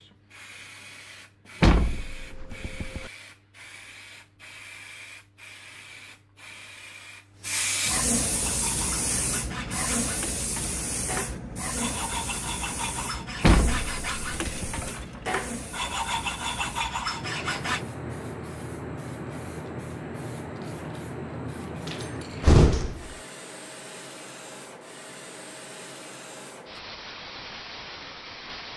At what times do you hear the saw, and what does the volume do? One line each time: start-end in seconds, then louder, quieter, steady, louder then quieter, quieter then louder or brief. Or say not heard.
8.3-17.9 louder.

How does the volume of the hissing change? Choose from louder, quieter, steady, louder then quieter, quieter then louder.
louder then quieter.